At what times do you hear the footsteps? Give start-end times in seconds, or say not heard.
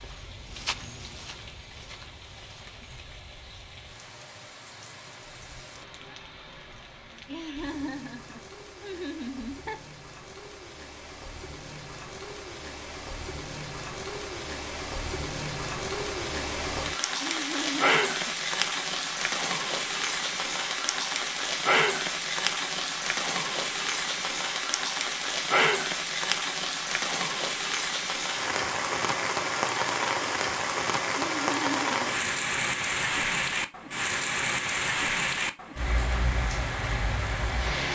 0.0-3.0.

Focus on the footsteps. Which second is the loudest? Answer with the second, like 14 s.
1 s.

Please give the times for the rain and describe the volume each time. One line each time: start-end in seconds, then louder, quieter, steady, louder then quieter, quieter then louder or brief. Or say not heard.
0.0-37.9 louder.